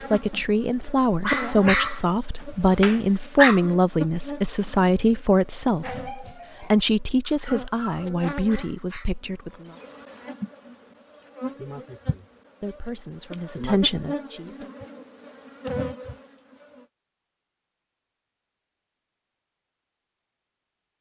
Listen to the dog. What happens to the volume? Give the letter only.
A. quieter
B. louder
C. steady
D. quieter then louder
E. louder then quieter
A.